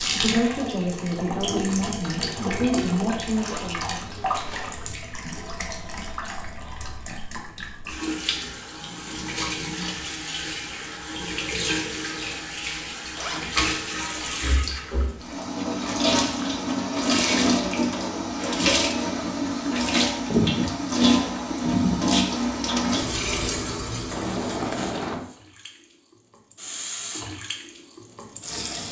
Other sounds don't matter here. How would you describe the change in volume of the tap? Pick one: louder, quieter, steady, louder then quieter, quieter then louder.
louder then quieter.